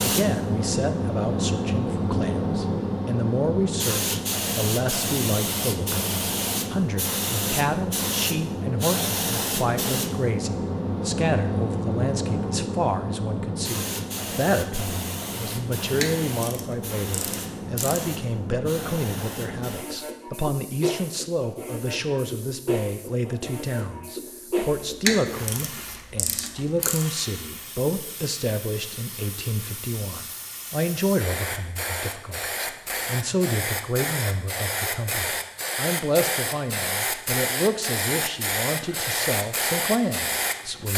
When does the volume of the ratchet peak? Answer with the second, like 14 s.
25 s.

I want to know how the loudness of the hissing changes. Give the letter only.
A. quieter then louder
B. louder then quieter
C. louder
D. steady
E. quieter
A.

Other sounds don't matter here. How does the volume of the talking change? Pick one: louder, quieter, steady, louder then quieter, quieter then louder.
steady.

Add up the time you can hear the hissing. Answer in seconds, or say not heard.
41 s.